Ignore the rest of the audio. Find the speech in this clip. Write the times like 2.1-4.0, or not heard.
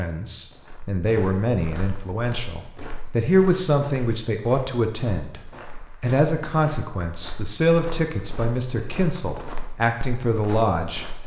0.0-5.4, 6.0-11.2.